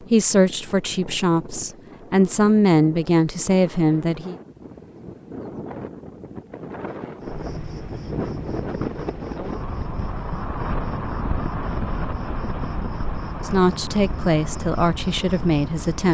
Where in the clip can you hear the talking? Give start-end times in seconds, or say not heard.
0.0-4.3, 13.4-16.0.